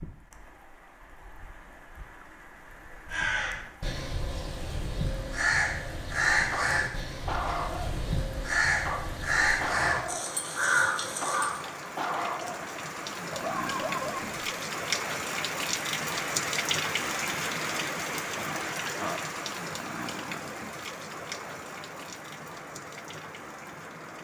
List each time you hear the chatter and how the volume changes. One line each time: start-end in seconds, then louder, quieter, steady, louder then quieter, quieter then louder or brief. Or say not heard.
not heard.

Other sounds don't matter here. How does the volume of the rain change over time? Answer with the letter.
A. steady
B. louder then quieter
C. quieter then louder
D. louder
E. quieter
B.